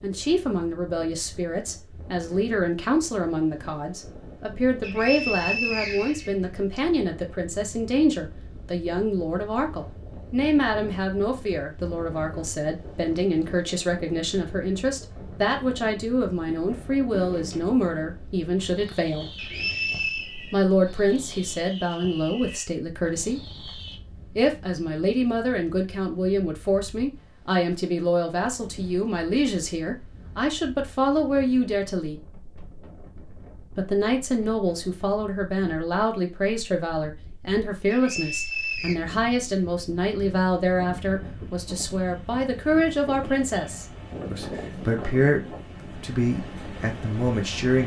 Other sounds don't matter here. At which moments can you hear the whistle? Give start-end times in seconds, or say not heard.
4.8-6.8, 19.4-20.3, 37.9-39.0.